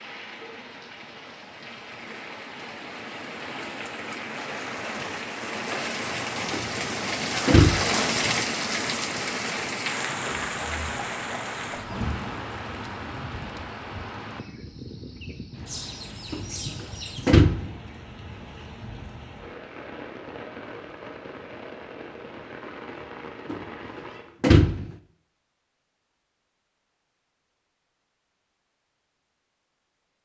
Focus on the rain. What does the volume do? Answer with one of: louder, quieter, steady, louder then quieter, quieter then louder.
louder then quieter.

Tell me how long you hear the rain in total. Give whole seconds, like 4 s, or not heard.
24 s.